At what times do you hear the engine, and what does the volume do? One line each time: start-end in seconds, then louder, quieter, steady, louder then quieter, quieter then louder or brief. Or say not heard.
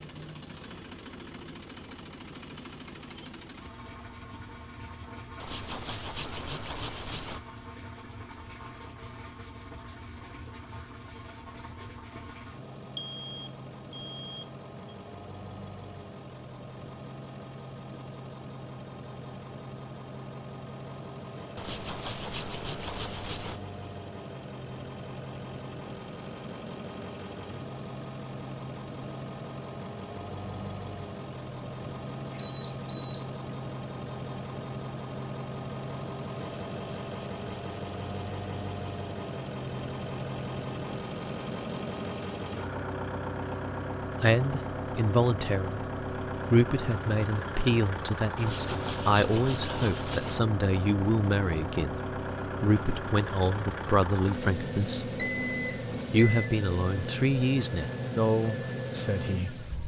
0.0-59.8 louder.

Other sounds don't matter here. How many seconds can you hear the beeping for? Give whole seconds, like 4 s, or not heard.
4 s.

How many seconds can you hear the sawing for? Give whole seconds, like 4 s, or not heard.
8 s.